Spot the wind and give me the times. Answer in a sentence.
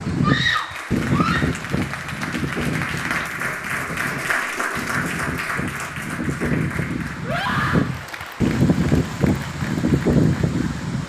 The wind can be heard from 0.0 to 11.0 s.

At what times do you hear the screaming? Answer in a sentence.
The screaming can be heard from 0.2 to 1.5 s and from 7.2 to 7.9 s.